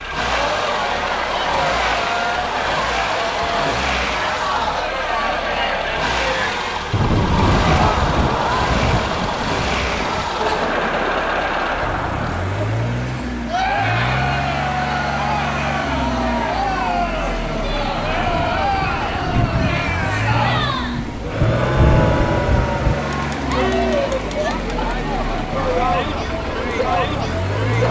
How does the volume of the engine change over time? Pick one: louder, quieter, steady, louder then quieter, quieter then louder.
steady.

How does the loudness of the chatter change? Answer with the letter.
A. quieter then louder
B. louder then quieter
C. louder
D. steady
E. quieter
D.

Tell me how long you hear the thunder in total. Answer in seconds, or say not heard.
9 s.